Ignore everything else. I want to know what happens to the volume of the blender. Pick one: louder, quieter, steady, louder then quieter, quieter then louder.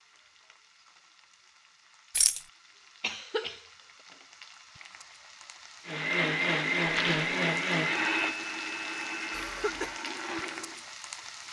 quieter.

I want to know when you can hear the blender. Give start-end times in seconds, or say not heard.
5.8-11.3.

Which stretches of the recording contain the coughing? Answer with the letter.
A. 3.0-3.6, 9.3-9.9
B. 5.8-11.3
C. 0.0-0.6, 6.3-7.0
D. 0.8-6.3
A.